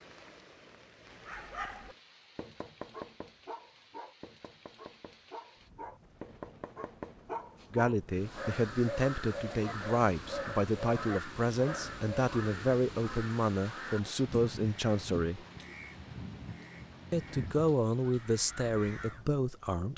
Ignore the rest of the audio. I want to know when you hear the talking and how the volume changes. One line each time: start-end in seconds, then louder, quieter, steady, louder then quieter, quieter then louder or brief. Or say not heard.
7.7-15.4 steady
17.1-19.9 brief.